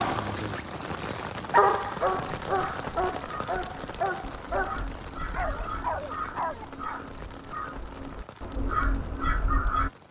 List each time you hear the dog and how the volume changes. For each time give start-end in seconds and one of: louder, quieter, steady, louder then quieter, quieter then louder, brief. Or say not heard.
0.0-7.0 quieter.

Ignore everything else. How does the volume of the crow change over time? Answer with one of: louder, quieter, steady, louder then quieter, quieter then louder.
louder.